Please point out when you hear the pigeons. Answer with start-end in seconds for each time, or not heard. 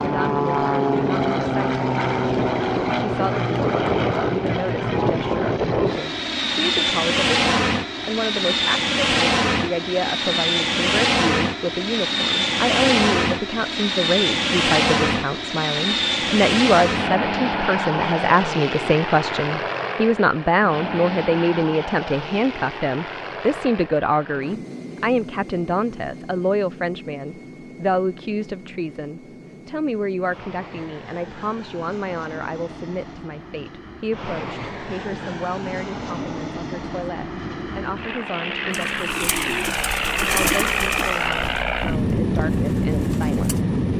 38.7-43.6.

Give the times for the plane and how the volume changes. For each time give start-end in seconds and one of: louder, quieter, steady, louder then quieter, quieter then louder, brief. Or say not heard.
0.0-43.9 quieter then louder.